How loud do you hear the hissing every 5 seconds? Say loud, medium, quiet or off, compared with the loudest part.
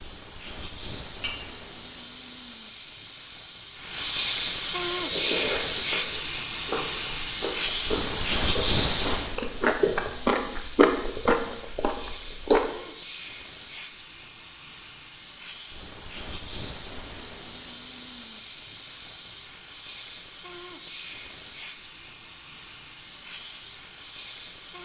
medium, loud, quiet, quiet, quiet.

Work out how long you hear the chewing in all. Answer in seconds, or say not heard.
8 s.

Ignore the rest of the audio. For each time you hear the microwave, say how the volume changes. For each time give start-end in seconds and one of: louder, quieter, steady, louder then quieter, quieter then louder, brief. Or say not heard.
not heard.